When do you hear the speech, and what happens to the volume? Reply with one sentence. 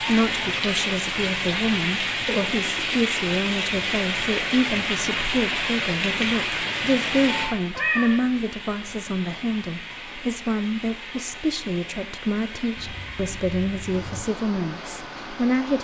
You can hear the speech from 0.0 to 15.7 s, at a steady volume.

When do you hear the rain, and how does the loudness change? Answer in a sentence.
You can hear the rain from 0.0 to 15.7 s, getting quieter.